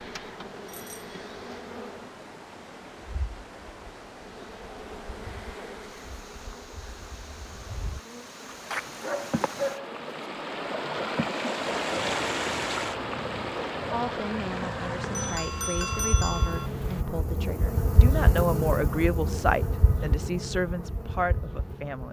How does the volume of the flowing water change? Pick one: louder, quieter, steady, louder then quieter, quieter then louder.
louder then quieter.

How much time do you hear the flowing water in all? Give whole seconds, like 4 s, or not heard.
17 s.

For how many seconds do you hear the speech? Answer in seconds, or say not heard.
8 s.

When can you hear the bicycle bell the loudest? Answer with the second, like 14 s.
16 s.